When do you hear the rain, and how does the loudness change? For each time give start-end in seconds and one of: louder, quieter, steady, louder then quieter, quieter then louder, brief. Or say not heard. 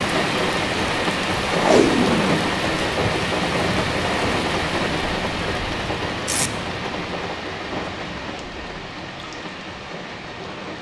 0.0-10.7 quieter.